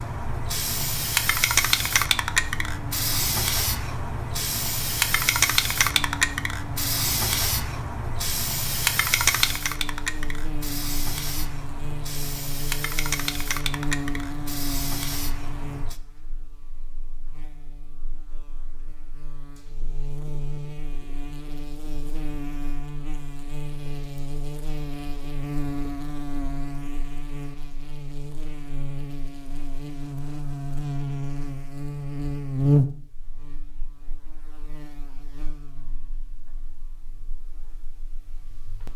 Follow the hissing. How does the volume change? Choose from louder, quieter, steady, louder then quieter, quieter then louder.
quieter.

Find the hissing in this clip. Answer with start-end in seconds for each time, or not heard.
0.0-15.9.